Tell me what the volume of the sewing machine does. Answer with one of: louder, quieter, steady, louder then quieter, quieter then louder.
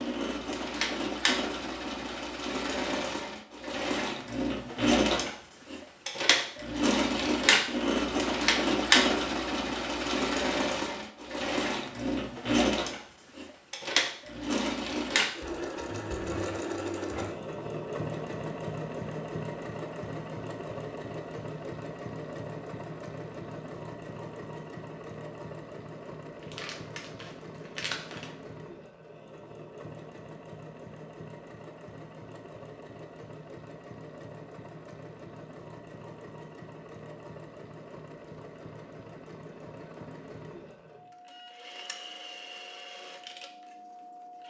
quieter.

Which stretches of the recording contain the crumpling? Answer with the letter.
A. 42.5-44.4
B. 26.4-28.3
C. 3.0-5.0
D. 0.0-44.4
B.